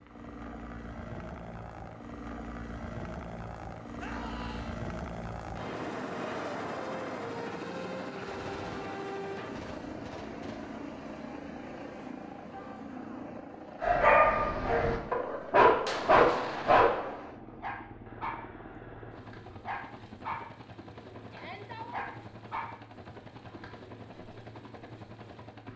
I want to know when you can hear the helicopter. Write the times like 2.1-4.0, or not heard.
0.0-25.7.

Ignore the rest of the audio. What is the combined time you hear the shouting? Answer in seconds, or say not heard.
2 s.